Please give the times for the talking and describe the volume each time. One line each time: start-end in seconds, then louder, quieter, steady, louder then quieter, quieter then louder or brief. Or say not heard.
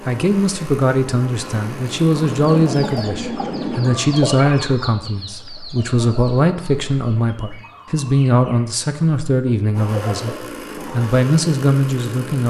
0.1-12.4 steady.